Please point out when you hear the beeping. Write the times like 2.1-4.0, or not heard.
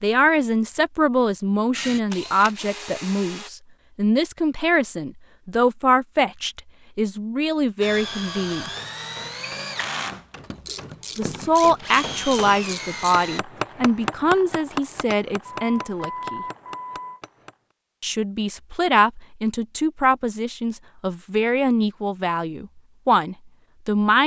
15.4-17.2.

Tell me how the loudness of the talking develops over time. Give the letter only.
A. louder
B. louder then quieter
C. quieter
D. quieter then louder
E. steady
E.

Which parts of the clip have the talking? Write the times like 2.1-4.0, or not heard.
0.0-8.7, 11.2-16.4, 18.0-24.2.